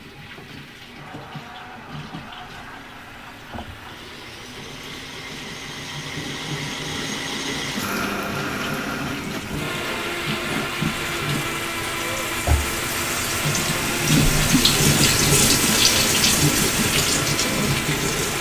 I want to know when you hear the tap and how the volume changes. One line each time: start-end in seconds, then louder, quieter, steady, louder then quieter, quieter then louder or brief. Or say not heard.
0.0-18.3 louder.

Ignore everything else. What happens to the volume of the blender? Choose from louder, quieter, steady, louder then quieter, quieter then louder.
louder.